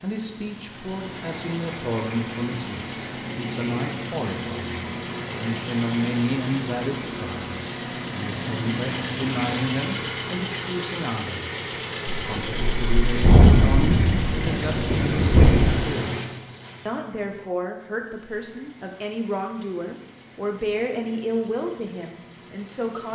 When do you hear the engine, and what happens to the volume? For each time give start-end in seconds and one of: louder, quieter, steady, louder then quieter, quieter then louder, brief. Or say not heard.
0.0-23.1 quieter.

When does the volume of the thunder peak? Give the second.
13 s.